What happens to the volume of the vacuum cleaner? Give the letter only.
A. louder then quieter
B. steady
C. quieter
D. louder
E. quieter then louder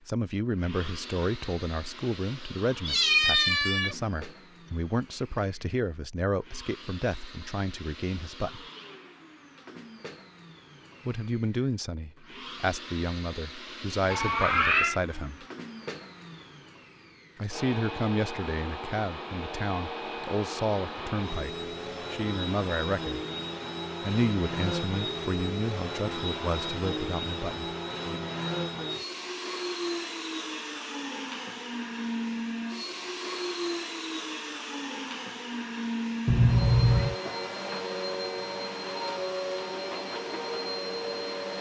D.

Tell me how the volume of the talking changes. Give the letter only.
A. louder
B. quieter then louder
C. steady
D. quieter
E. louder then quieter
C.